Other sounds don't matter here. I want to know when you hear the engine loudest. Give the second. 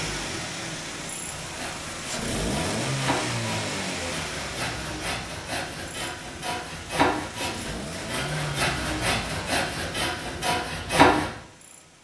3 s.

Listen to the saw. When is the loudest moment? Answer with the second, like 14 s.
11 s.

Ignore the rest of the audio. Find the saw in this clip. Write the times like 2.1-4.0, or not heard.
1.2-11.3.